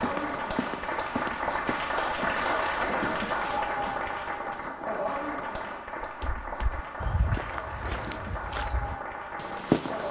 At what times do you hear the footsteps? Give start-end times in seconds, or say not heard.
0.0-1.8, 6.0-10.0.